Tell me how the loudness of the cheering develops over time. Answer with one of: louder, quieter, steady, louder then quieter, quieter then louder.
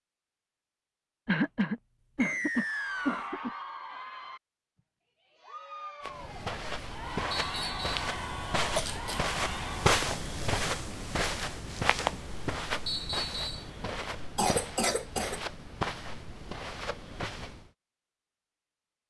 quieter then louder.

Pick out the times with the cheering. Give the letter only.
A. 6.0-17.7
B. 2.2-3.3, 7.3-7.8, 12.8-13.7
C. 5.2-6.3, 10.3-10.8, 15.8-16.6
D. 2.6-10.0
D.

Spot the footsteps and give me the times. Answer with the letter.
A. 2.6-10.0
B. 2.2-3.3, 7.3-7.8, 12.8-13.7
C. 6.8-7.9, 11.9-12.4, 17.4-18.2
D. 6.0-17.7
D.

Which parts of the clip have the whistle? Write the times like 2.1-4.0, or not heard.
2.2-3.3, 7.3-7.8, 12.8-13.7.